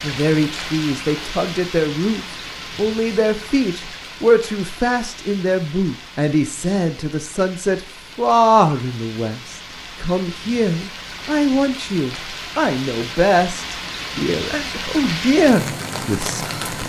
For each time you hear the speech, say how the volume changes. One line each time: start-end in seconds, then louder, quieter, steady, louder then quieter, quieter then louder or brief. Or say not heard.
0.0-16.8 steady.